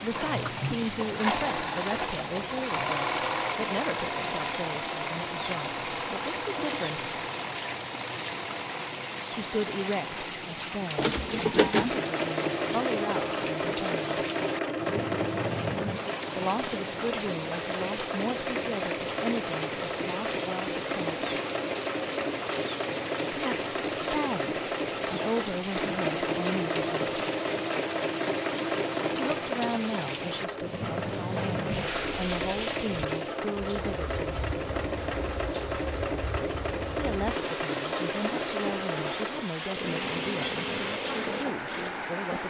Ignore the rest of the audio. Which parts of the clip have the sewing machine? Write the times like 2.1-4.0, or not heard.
0.0-42.4.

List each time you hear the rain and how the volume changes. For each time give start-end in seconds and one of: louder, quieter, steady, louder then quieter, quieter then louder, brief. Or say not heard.
0.0-42.4 steady.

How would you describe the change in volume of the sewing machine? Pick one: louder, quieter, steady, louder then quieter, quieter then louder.
steady.